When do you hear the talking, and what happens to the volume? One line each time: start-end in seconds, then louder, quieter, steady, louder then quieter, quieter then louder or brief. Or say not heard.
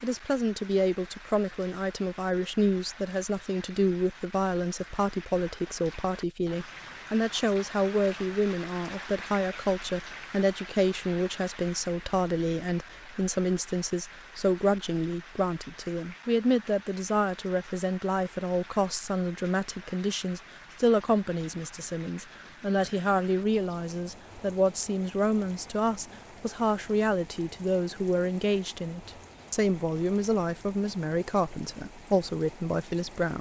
0.0-33.3 steady.